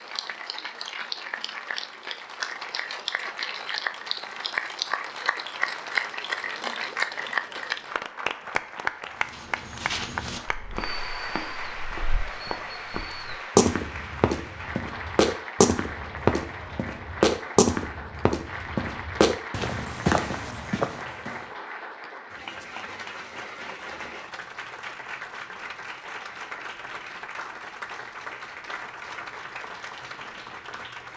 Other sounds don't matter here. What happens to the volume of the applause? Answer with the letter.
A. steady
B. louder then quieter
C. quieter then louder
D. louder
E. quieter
E.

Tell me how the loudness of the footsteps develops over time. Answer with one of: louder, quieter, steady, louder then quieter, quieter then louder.
louder.